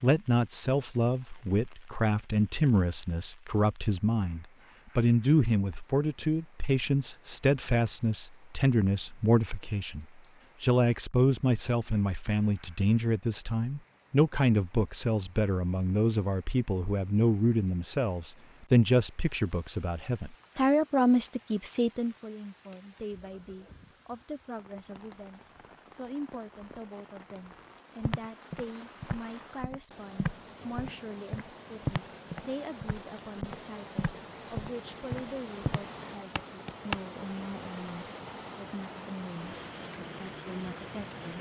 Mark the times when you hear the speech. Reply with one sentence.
You can hear the speech from 0.0 to 41.3 s.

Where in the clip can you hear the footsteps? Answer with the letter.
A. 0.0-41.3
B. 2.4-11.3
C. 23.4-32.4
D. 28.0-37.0
D.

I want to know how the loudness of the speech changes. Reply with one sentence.
The loudness of the speech goes down.